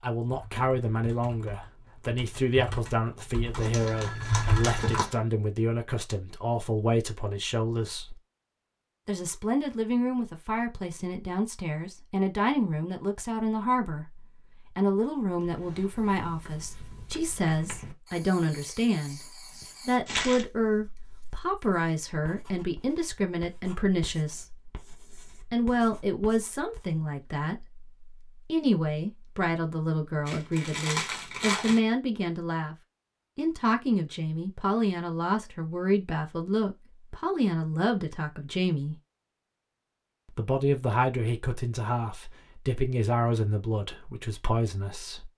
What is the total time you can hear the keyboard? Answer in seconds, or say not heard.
5 s.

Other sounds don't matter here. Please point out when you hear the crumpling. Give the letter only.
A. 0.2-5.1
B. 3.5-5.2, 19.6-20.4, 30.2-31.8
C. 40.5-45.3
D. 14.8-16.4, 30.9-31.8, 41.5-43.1
B.